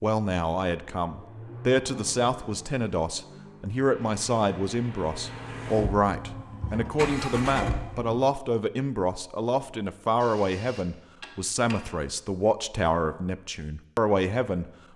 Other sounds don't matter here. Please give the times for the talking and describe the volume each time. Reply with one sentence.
The talking can be heard from 0.0 to 14.7 s, at a steady volume.